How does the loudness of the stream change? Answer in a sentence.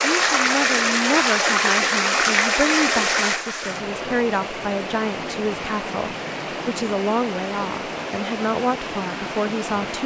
The loudness of the stream goes down.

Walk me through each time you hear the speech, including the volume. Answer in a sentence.
You can hear the speech from 0.1 to 10.0 s, at a steady volume.